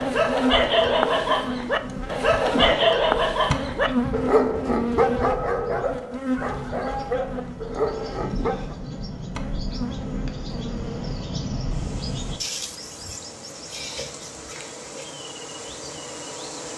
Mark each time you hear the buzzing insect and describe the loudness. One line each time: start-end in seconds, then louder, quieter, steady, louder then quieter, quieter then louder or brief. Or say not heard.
0.0-16.7 quieter.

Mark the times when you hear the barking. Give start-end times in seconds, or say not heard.
0.0-8.8.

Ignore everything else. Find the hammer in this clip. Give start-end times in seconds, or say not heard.
not heard.